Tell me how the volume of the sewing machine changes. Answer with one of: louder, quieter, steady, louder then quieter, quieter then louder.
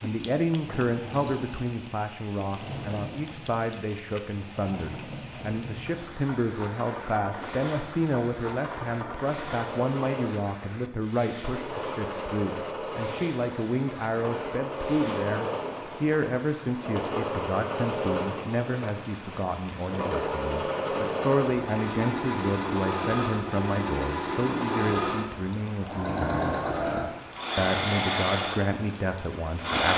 louder.